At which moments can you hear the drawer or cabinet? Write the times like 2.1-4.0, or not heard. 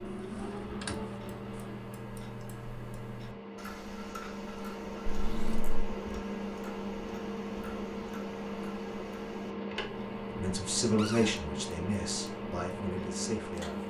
0.1-1.0, 5.0-5.8, 10.9-11.4.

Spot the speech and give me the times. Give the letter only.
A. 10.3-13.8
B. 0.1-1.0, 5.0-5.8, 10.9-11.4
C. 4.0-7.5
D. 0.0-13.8
A.